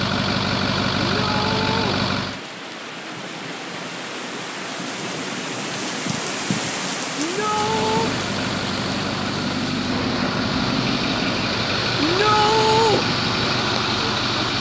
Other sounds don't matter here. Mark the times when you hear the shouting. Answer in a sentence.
The shouting can be heard from 1.1 to 2.0 s, from 7.2 to 8.1 s and from 11.9 to 13.1 s.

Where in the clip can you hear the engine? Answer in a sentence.
The engine can be heard from 0.0 to 2.4 s and from 7.4 to 14.5 s.